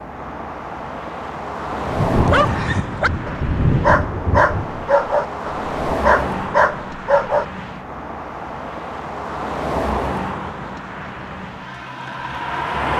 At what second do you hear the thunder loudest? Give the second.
4 s.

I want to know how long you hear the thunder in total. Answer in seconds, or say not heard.
3 s.